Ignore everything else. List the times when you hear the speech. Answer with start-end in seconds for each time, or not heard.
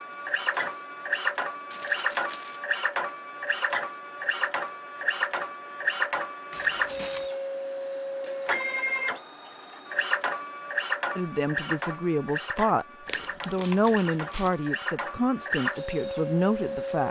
11.2-12.8, 13.4-17.0.